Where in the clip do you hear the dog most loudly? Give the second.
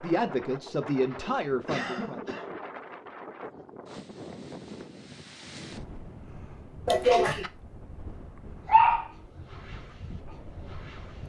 9 s.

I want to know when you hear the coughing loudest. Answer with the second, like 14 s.
7 s.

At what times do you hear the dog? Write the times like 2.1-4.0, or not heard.
8.7-11.2.